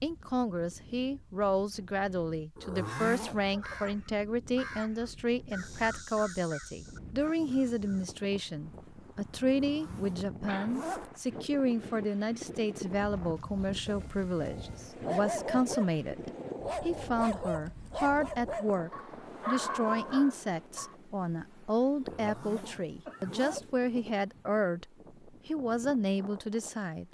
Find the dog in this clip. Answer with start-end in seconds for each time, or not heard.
13.8-20.9.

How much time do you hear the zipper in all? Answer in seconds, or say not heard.
4 s.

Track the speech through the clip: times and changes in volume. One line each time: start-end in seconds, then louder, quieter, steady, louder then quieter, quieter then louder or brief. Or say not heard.
0.0-27.0 steady.